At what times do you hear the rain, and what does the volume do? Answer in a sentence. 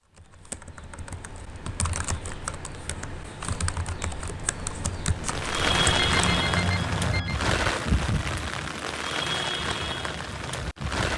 The rain can be heard from 5.2 to 11.1 s, getting quieter.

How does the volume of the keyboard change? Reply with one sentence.
The loudness of the keyboard goes up.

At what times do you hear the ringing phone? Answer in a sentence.
The ringing phone can be heard from 5.9 to 7.5 s.